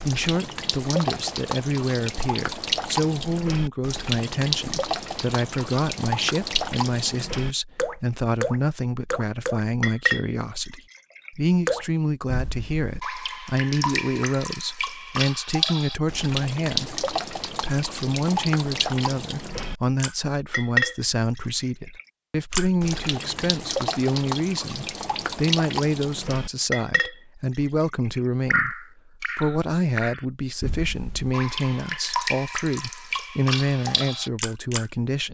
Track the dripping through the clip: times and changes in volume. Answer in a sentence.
You can hear the dripping from 0.0 to 34.9 s, at a steady volume.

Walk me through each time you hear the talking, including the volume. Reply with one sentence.
You can hear the talking from 0.0 to 35.2 s, at a steady volume.